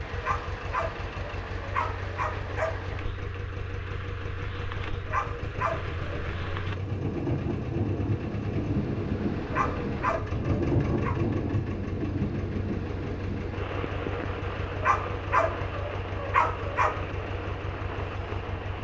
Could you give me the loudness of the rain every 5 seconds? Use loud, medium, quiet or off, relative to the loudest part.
medium, loud, loud, medium.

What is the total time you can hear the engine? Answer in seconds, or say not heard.
19 s.